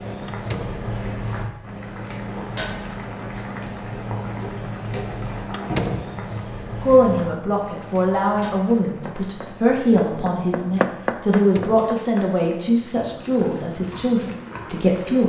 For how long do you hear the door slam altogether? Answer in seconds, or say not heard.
2 s.